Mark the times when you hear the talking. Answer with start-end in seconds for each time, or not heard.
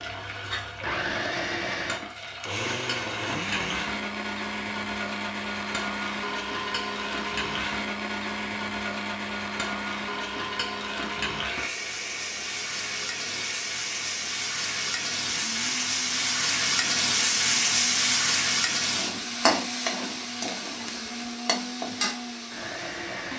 not heard.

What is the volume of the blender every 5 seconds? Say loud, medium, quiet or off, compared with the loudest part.
loud, loud, medium, medium, medium.